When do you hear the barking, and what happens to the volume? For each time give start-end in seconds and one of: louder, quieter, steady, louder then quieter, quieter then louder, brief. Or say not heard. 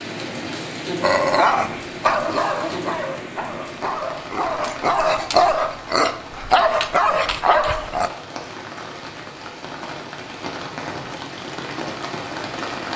1.0-8.1 quieter then louder.